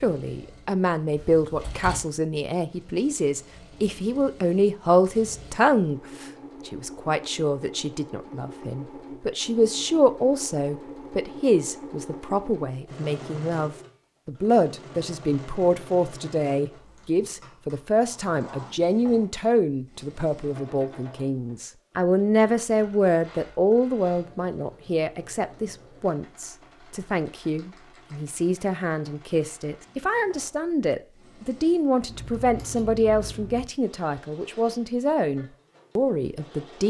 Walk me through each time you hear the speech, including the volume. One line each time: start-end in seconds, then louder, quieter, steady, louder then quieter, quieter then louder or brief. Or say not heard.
0.0-36.8 steady.